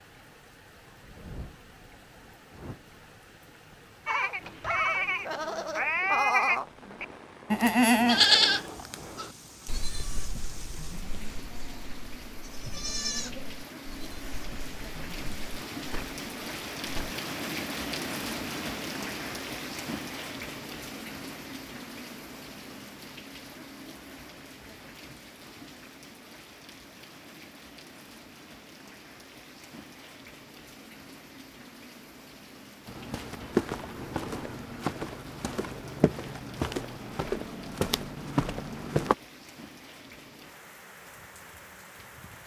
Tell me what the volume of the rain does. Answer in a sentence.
The loudness of the rain goes up, then down.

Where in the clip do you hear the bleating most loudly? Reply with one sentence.
The loudest moment of the bleating is at 8 seconds.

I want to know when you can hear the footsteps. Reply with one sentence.
The footsteps can be heard from 32.9 to 39.1 s.